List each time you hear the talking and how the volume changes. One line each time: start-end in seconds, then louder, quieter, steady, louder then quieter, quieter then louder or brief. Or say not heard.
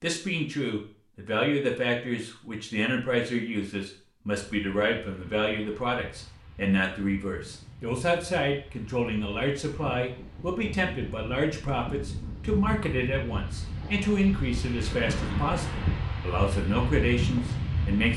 0.0-18.1 steady.